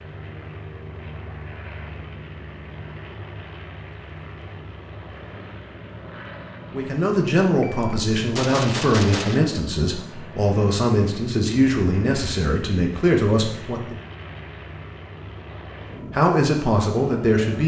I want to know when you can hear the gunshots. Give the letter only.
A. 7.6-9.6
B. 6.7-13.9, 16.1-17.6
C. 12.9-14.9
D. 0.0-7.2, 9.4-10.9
A.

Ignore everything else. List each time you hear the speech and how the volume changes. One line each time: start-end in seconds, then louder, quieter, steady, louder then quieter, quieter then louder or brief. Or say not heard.
6.7-13.9 steady
16.1-17.6 brief.